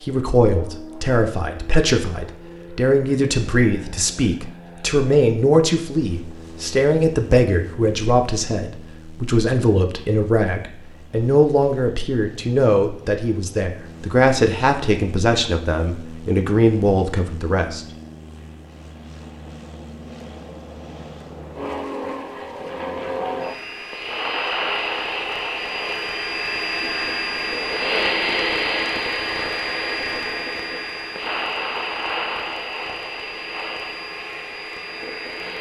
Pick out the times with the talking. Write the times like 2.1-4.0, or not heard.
0.0-17.9.